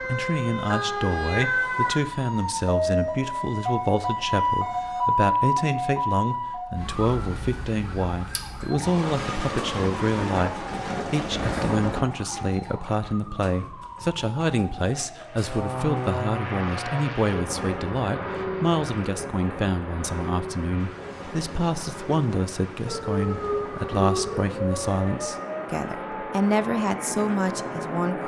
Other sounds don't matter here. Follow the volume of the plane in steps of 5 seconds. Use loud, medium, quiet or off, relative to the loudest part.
off, off, off, loud, medium, loud.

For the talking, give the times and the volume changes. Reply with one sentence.
You can hear the talking from 0.1 to 28.2 s, at a steady volume.